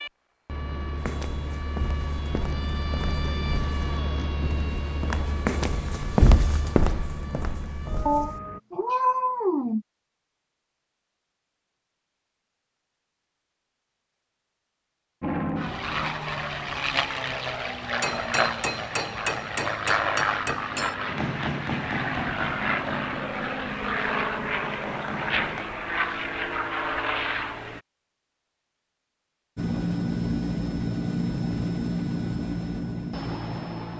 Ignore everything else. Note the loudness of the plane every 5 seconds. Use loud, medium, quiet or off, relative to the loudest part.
medium, medium, off, loud, loud, loud, loud.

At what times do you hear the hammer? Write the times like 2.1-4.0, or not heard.
17.9-25.6.